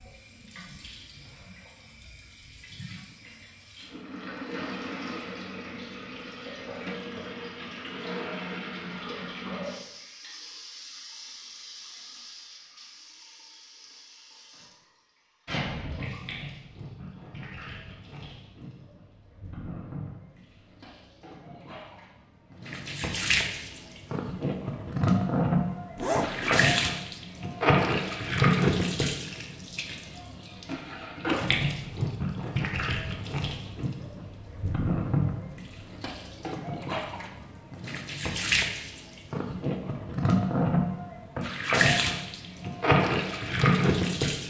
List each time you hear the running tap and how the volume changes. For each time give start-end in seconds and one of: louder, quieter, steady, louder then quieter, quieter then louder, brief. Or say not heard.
0.0-44.4 louder.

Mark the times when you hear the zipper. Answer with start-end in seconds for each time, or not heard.
25.9-26.7.